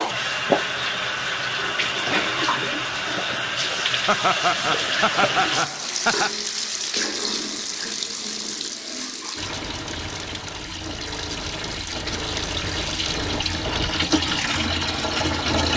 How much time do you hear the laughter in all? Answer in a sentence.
You can hear the laughter for 2 seconds altogether.